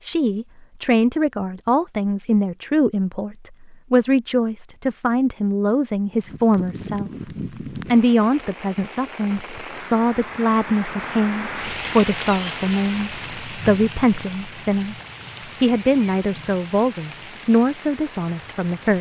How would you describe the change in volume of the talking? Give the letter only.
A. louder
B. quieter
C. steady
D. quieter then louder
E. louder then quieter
C.